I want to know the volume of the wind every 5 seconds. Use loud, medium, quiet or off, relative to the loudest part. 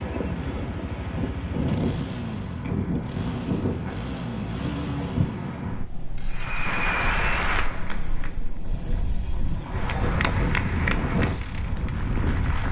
loud, medium, loud.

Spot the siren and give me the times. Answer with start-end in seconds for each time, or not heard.
not heard.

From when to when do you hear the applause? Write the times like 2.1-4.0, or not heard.
6.3-8.6, 9.8-12.6.